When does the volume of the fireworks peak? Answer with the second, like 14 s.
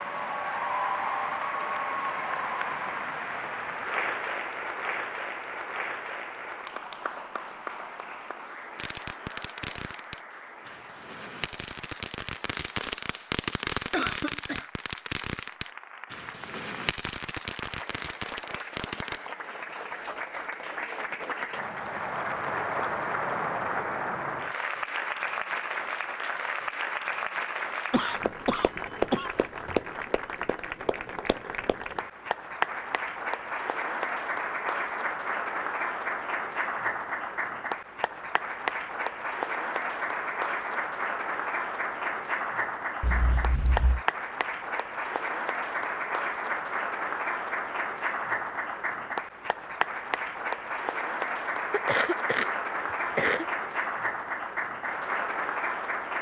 14 s.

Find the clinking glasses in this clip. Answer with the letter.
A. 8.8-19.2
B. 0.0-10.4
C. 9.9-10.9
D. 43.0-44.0
D.